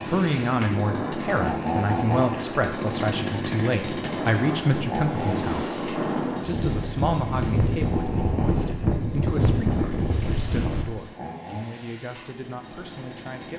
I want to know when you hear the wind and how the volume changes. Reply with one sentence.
You can hear the wind from 0.0 to 10.8 s, getting louder.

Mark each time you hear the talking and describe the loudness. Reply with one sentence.
The talking can be heard from 0.1 to 13.5 s, getting quieter.